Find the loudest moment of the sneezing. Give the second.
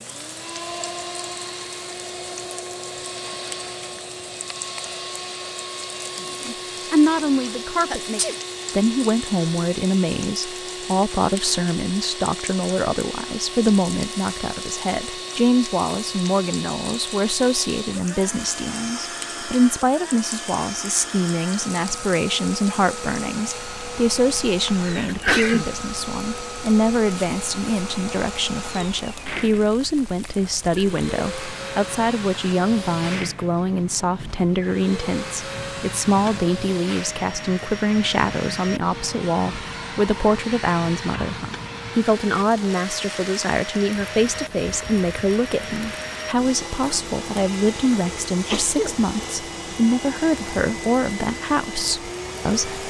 25 s.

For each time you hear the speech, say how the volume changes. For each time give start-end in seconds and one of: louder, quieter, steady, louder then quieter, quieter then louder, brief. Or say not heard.
6.5-52.8 steady.